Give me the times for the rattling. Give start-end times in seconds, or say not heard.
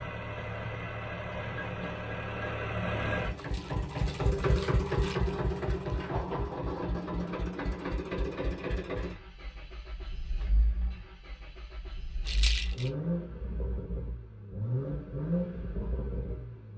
3.4-6.0, 12.2-12.9.